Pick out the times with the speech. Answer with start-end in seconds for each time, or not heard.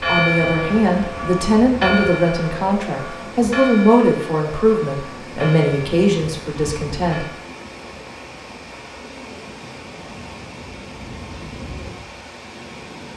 0.1-7.2.